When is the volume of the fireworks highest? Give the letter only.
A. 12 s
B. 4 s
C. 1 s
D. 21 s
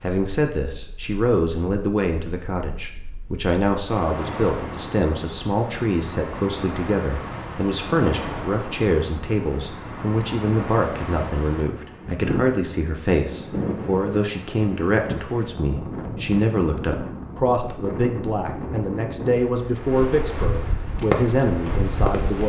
D.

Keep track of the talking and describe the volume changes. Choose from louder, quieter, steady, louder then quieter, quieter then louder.
steady.